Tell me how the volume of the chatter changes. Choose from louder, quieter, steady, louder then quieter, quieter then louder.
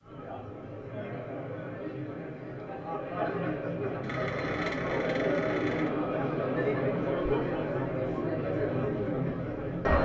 louder.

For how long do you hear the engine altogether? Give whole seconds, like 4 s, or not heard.
2 s.